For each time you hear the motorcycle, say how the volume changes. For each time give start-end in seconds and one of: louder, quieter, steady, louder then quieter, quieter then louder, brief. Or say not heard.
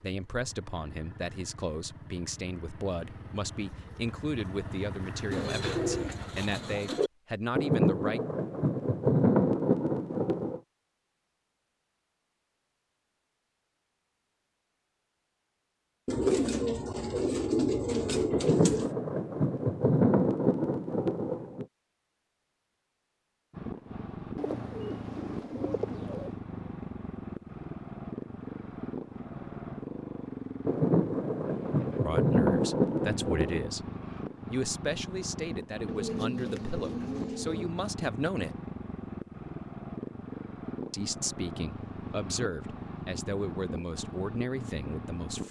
0.0-6.8 louder
23.5-45.4 steady.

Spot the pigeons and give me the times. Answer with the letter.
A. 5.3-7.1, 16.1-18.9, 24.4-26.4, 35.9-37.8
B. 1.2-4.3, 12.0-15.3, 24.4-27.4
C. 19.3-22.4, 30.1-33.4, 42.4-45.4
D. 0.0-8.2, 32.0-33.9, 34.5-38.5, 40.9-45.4
A.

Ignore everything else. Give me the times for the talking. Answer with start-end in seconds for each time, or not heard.
0.0-8.2, 32.0-33.9, 34.5-38.5, 40.9-45.4.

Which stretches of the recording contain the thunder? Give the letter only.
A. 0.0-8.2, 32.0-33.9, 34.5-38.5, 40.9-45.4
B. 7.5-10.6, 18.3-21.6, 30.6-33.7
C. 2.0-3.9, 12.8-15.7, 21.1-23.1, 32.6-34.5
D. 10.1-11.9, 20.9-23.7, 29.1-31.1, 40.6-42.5
B.